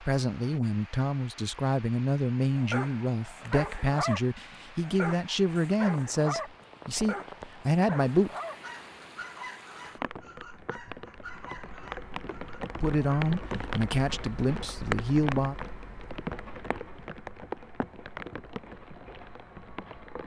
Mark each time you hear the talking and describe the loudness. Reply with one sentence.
The talking can be heard from 0.0 to 8.3 s, at a steady volume; and briefly from 12.8 to 15.6 s.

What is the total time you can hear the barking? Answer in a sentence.
The barking can be heard for 11 seconds in total.